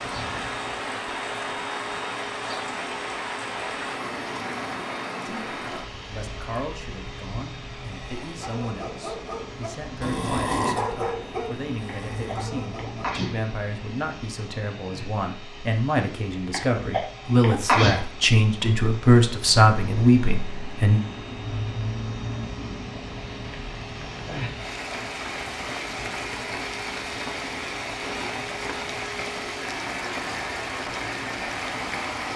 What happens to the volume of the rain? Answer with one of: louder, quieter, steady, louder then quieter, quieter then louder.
quieter then louder.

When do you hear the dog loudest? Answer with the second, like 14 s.
11 s.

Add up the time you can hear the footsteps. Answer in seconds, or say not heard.
not heard.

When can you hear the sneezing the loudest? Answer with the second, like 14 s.
18 s.